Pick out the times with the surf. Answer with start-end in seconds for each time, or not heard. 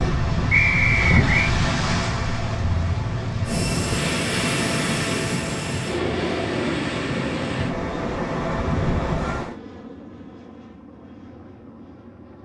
0.0-9.6.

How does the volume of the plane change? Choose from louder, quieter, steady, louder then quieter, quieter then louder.
quieter.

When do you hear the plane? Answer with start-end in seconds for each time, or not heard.
3.5-12.4.